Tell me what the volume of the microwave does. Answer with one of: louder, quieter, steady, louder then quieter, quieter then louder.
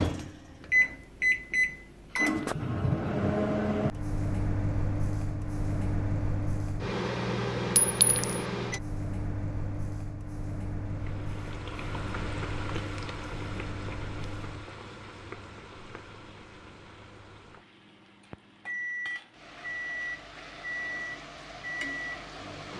quieter then louder.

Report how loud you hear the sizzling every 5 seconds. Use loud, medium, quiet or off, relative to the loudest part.
off, off, loud, medium, loud.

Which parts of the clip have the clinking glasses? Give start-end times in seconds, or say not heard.
7.8-8.4.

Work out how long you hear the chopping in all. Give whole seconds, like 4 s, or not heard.
not heard.